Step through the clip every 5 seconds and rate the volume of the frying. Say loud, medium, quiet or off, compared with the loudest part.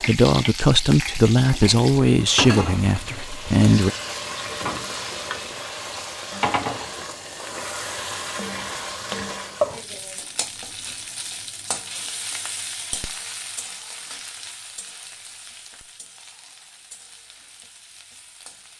loud, loud, medium, quiet.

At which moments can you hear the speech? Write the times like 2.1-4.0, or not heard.
0.0-3.9.